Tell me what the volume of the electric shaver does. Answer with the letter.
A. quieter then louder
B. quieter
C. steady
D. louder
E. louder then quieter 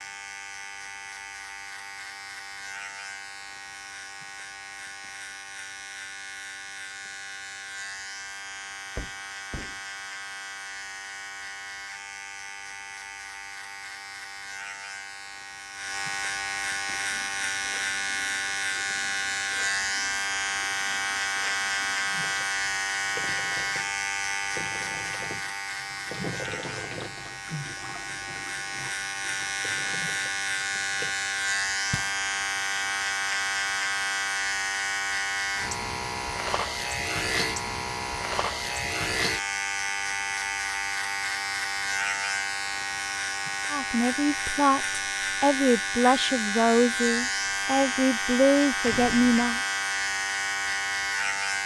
D.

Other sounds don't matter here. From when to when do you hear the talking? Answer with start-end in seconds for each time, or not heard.
43.7-49.6.